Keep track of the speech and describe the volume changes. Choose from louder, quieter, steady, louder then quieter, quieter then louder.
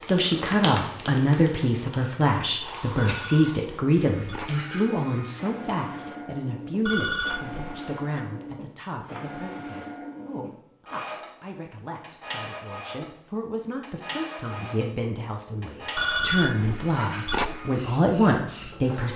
quieter then louder.